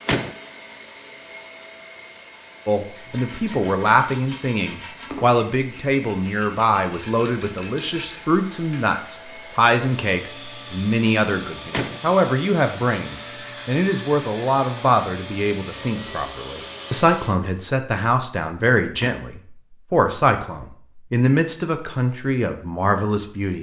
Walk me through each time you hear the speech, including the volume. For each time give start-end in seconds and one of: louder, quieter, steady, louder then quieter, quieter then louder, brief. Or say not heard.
2.6-23.5 steady.